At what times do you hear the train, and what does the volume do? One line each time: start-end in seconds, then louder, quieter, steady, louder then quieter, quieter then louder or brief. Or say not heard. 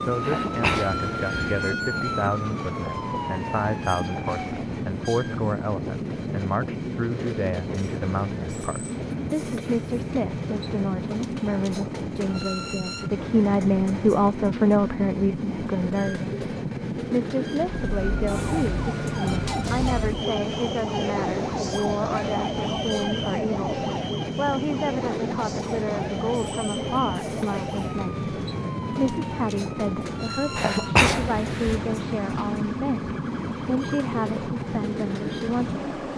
0.0-36.1 steady.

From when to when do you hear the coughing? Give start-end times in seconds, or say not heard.
0.2-1.6, 30.6-31.8.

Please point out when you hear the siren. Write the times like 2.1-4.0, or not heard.
0.0-4.6, 17.8-36.1.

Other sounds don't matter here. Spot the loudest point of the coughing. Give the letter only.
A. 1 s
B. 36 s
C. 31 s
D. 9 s
C.